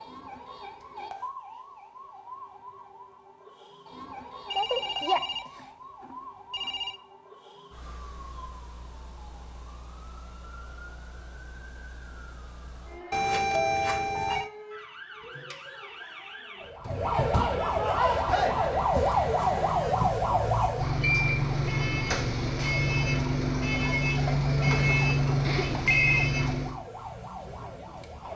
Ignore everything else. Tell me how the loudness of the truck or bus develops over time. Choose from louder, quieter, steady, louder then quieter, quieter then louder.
louder.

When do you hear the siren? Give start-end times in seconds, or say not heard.
0.0-28.3.